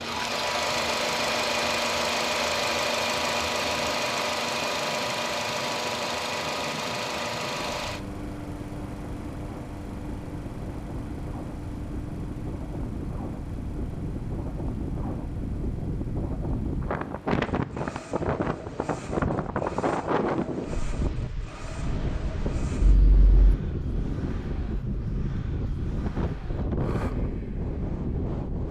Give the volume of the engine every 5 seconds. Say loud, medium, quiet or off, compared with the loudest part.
loud, medium, quiet, quiet, quiet, quiet.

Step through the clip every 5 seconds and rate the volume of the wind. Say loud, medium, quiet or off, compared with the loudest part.
quiet, medium, medium, loud, loud, loud.